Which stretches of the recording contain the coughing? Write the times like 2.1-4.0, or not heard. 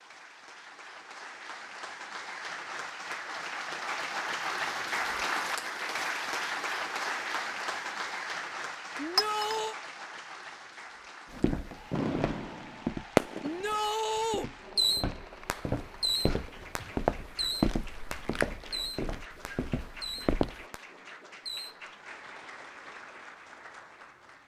not heard.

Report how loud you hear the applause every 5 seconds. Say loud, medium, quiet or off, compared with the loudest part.
loud, loud, quiet, quiet, quiet.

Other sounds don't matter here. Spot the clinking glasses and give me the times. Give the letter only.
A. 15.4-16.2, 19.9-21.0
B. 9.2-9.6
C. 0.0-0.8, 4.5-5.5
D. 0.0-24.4
B.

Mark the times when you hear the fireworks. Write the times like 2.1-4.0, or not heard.
11.3-13.8, 14.8-21.8.